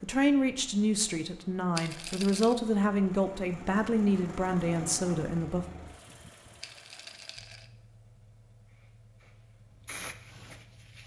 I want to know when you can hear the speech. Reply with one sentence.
The speech can be heard from 0.0 to 5.7 s.